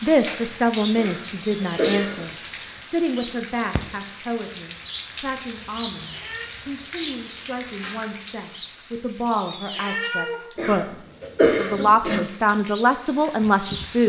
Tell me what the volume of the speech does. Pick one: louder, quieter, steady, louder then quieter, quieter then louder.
quieter then louder.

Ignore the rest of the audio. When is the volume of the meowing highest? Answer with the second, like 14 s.
10 s.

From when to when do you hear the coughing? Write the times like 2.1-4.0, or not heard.
0.9-2.2, 10.6-12.2.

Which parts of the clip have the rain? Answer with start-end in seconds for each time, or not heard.
0.0-14.0.